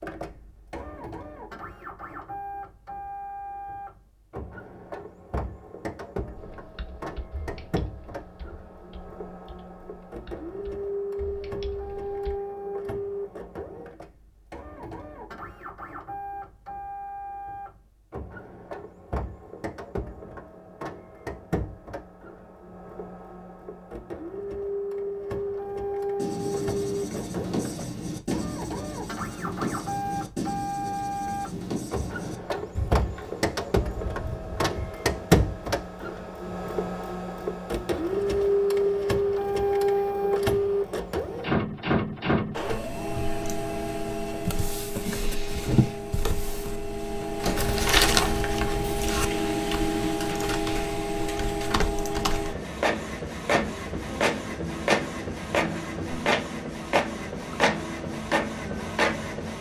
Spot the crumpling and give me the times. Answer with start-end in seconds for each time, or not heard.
47.5-49.2.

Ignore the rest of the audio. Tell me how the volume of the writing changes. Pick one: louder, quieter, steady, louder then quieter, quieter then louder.
quieter.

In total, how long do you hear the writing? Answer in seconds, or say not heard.
9 s.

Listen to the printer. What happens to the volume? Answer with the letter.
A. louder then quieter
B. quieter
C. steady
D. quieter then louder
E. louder
E.